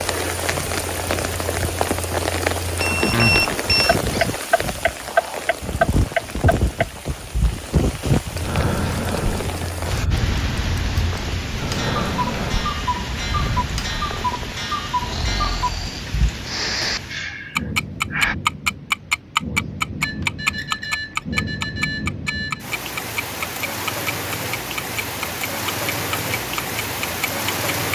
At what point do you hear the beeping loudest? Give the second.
3 s.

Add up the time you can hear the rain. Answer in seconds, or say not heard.
28 s.